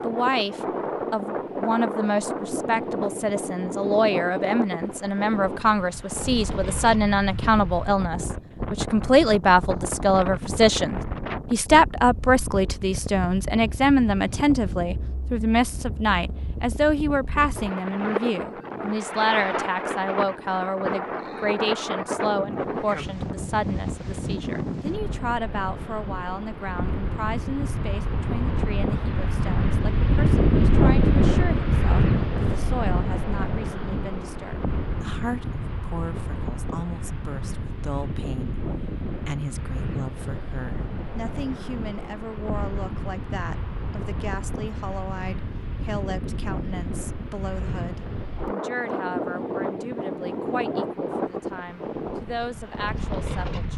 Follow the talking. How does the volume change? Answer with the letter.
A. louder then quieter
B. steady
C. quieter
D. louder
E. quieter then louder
C.